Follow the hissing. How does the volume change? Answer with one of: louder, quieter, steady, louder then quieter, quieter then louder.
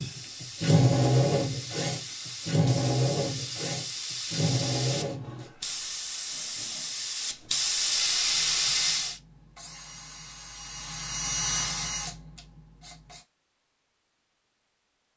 louder.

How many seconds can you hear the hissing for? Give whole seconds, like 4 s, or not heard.
9 s.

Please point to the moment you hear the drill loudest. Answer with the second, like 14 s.
1 s.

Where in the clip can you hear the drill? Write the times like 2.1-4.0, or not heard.
0.0-5.5, 8.2-13.2.